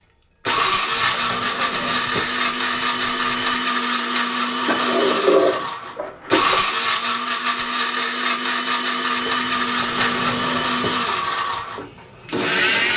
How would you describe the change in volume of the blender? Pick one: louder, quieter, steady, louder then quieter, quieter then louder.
steady.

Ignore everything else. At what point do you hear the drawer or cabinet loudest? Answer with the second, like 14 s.
5 s.